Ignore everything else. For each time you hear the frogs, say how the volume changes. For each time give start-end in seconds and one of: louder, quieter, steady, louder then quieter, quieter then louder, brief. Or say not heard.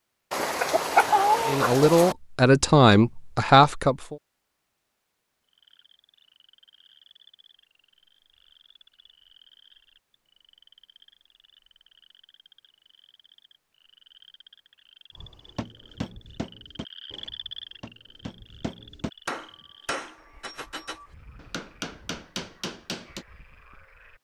5.5-24.1 louder then quieter.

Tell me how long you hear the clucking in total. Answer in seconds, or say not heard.
2 s.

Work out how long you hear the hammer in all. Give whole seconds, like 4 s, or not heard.
8 s.